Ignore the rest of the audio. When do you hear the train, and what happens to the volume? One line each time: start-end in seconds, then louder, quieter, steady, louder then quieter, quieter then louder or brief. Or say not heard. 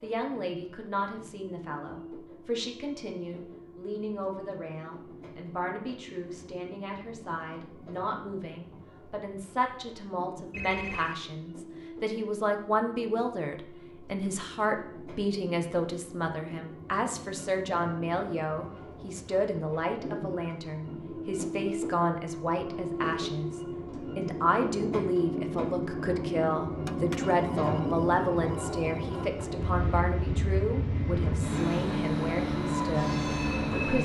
0.0-33.9 louder.